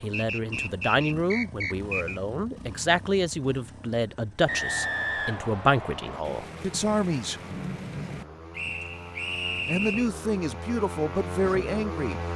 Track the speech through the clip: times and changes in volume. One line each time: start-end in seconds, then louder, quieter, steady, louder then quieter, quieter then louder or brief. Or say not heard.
0.0-7.4 steady
9.7-12.2 brief.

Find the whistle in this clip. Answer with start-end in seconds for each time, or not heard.
0.1-2.2, 4.5-6.2, 8.6-10.1.